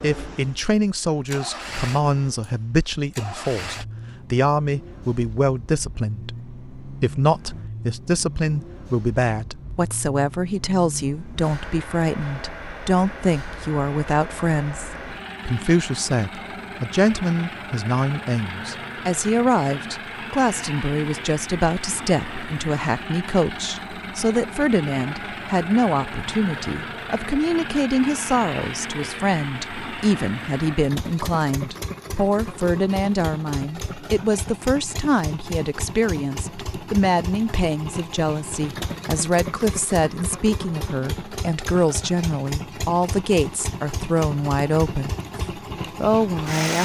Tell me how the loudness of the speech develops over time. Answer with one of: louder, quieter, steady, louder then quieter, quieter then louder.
steady.